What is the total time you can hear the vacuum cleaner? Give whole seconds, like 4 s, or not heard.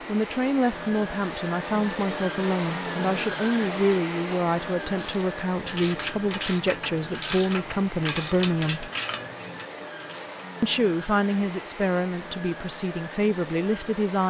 14 s.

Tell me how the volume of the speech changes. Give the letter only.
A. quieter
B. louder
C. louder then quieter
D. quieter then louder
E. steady
E.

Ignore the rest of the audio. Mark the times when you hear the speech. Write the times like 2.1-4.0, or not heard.
0.1-8.9, 10.6-14.2.